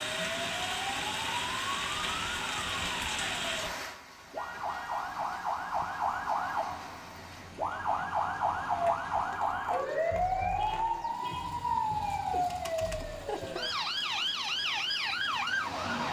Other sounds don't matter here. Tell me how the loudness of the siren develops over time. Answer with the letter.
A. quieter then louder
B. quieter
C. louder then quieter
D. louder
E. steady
D.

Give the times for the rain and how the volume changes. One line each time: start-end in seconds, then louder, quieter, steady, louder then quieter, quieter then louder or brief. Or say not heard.
0.0-15.8 quieter.